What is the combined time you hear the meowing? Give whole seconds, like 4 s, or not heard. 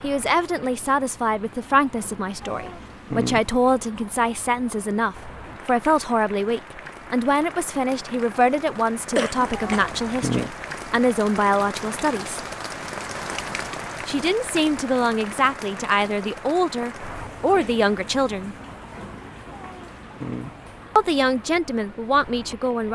3 s.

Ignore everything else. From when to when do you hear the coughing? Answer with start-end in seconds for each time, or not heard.
9.2-9.9.